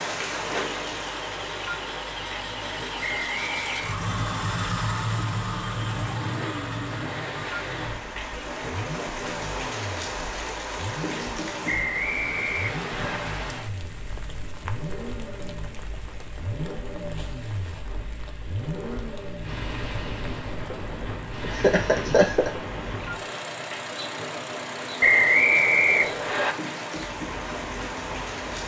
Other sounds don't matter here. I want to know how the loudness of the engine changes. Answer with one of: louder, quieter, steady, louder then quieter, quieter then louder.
quieter.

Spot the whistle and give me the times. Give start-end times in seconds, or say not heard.
3.0-4.0, 11.7-13.2, 25.0-26.6.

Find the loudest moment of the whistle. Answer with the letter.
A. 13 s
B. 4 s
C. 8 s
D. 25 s
D.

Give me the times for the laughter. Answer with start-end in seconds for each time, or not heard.
21.4-22.5.